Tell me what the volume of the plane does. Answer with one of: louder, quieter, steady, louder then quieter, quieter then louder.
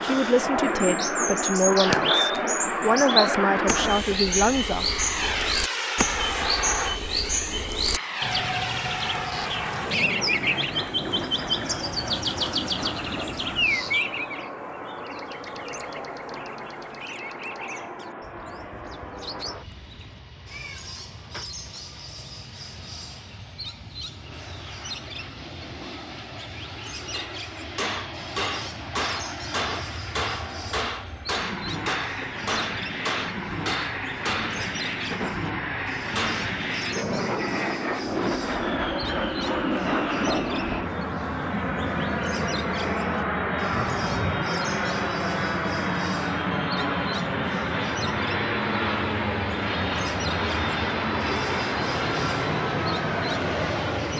quieter then louder.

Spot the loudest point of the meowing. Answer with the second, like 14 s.
44 s.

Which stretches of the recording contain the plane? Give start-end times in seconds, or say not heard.
0.0-54.1.